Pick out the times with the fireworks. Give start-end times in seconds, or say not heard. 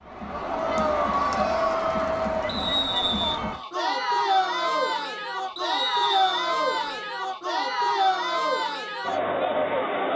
not heard.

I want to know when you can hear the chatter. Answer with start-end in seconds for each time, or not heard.
0.1-10.1.